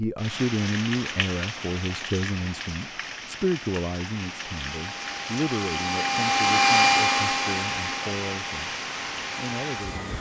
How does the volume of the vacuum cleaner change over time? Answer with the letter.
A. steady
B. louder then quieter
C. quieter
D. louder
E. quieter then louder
B.